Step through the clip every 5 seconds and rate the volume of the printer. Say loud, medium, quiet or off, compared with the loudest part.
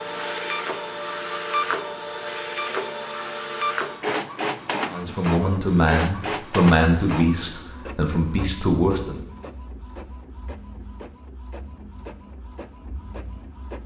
loud, medium, quiet.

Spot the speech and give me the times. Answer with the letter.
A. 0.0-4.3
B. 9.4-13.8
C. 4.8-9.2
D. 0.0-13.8
C.